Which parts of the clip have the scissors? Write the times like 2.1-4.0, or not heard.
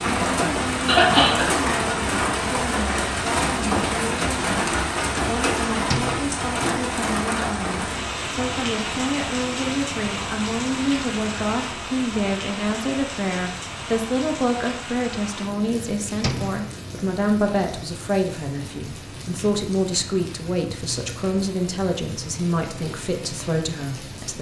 not heard.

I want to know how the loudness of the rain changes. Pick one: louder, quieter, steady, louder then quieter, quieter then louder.
quieter.